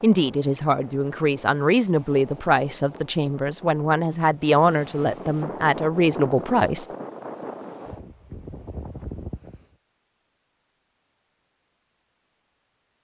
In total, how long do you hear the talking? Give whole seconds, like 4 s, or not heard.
7 s.